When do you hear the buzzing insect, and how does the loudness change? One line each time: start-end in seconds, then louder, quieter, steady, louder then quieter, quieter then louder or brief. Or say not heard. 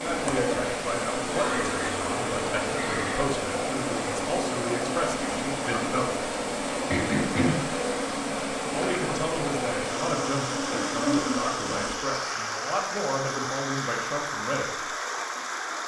0.0-11.9 steady.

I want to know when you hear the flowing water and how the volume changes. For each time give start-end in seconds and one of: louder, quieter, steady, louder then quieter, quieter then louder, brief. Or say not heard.
0.0-15.8 steady.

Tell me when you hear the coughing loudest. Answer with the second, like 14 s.
7 s.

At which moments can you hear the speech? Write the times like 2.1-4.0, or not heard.
0.0-6.2, 8.7-14.9.